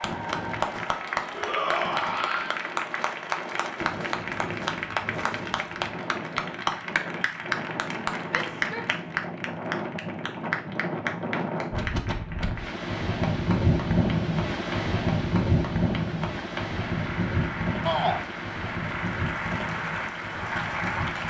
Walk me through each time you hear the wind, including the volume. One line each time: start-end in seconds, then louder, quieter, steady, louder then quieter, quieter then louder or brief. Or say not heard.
0.0-21.2 louder then quieter.